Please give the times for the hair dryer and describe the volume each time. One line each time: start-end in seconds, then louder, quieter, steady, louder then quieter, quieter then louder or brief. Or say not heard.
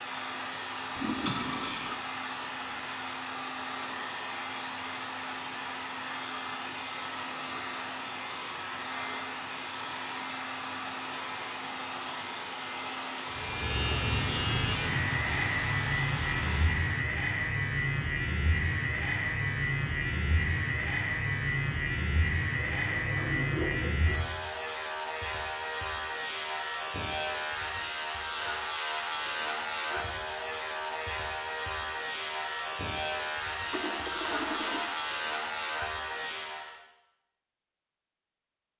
0.0-17.1 steady.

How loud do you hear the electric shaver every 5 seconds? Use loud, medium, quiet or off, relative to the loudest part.
off, off, loud, loud, loud, loud, loud, loud.